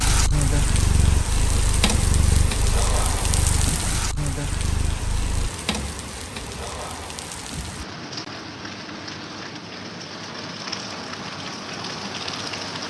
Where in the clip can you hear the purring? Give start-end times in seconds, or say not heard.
0.0-5.5.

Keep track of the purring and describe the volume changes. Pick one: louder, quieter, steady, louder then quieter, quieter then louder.
quieter.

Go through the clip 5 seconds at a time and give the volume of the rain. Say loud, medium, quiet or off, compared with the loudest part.
loud, medium, loud.